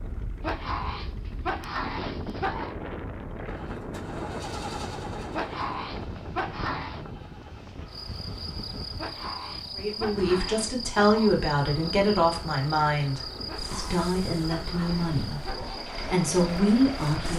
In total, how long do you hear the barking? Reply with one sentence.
The barking can be heard for 9 seconds in total.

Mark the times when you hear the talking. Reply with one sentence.
The talking can be heard from 9.8 to 17.3 s.